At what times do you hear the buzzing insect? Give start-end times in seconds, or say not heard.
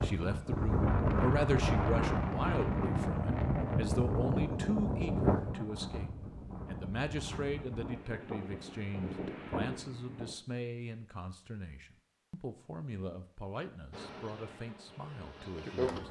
13.9-16.0.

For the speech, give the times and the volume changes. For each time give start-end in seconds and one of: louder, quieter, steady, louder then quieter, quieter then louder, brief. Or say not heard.
0.0-16.0 quieter.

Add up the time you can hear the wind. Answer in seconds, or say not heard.
10 s.